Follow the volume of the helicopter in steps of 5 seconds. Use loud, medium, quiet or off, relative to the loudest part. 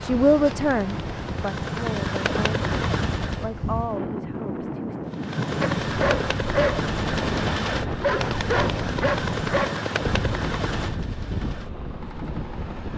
loud, loud, medium.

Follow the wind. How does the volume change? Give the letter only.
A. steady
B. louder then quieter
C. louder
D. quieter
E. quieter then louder
A.